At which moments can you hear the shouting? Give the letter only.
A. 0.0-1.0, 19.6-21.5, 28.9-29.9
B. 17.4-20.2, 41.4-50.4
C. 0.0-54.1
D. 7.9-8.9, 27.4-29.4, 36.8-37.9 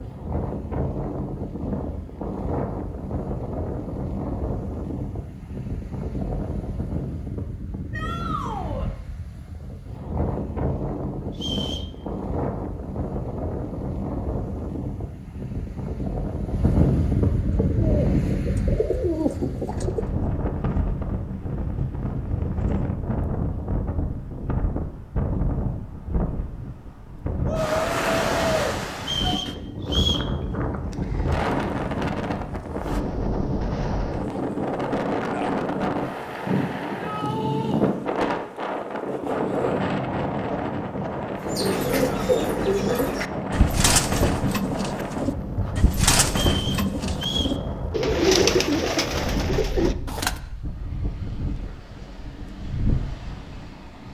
D.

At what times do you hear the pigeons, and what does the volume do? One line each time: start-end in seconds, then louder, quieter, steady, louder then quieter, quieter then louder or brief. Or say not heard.
17.4-20.2 brief
41.4-50.4 steady.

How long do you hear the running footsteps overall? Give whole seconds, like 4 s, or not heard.
not heard.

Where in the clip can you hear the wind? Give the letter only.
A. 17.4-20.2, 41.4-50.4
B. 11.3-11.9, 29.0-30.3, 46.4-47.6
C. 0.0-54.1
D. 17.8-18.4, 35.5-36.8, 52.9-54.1
C.